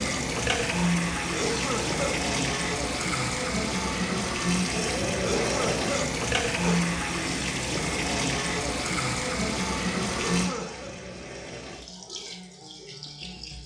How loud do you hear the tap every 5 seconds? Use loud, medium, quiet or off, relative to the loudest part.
loud, loud, medium.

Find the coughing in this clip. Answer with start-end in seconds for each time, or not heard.
1.2-2.2, 5.1-7.0, 10.1-10.9.